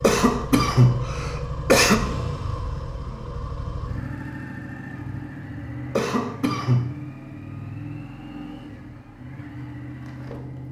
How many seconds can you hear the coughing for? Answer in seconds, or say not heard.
3 s.